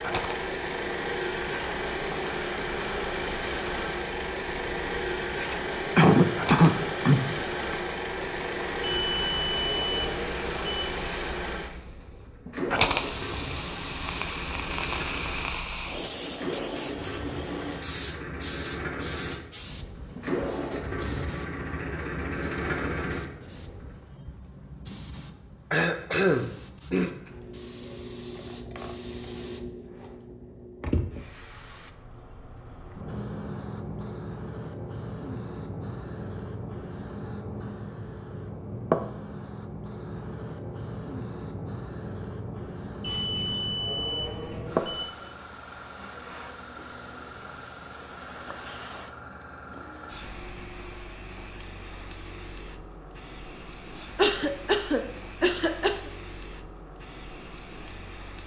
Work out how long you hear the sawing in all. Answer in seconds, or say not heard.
not heard.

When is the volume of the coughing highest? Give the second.
6 s.